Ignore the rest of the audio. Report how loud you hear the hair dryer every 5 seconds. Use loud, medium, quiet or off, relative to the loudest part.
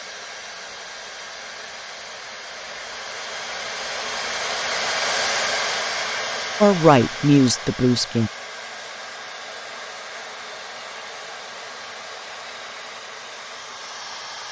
loud, loud, medium.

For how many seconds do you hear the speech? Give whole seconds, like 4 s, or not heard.
2 s.